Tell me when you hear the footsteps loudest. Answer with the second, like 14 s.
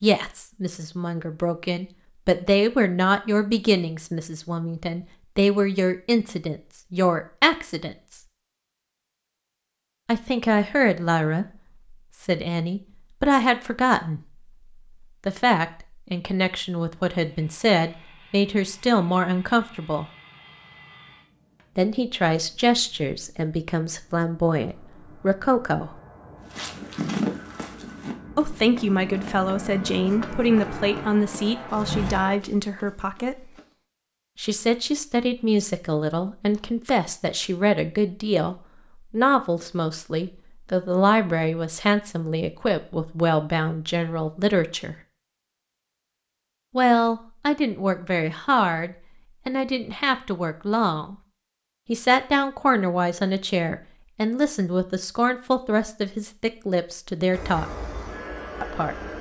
27 s.